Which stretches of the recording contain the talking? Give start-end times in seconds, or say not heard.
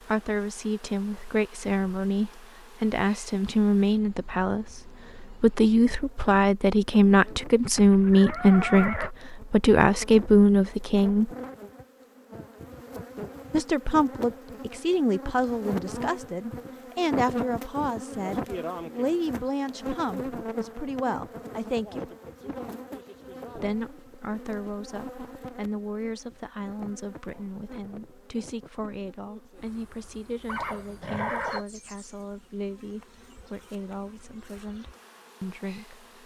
0.1-11.3, 13.5-22.1, 23.6-36.1.